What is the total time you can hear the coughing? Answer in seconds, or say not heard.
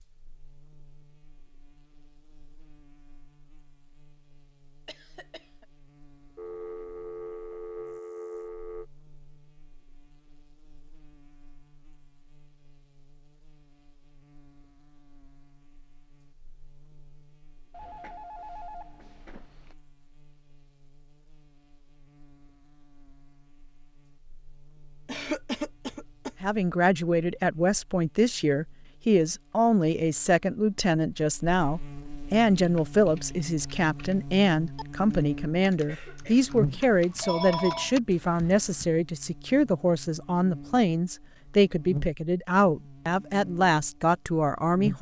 3 s.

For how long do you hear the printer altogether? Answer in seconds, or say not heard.
not heard.